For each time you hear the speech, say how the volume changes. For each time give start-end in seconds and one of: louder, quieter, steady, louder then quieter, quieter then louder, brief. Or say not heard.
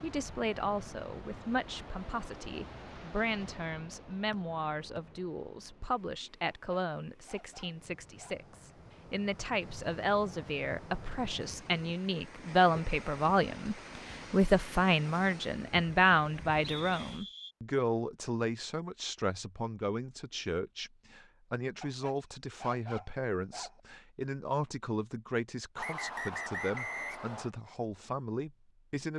0.0-29.1 louder then quieter.